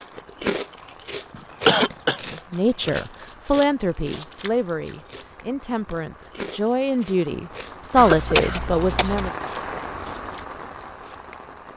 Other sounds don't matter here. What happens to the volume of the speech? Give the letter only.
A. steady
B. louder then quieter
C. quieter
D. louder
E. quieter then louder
E.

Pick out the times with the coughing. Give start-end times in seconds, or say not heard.
1.6-2.2, 8.0-9.3.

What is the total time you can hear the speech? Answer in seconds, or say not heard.
7 s.